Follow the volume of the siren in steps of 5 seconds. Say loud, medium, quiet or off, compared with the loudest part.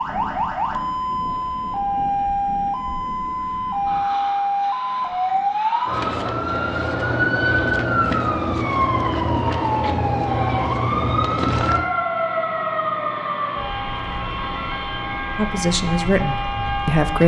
loud, loud, loud, medium.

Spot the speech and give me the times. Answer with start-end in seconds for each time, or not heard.
15.3-17.2.